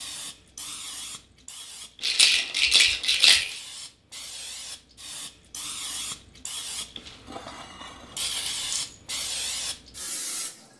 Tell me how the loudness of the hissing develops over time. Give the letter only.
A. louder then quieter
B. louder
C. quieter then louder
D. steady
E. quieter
B.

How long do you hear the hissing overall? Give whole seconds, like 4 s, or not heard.
11 s.